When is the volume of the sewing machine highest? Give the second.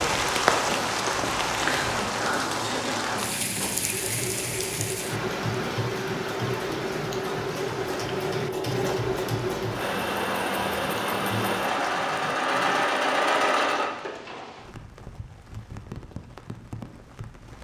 13 s.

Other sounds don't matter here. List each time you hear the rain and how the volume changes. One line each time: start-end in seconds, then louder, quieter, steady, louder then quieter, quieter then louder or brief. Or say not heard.
0.0-17.5 quieter.